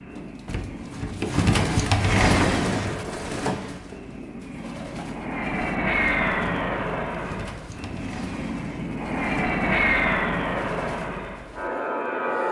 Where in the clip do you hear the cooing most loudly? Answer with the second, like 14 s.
2 s.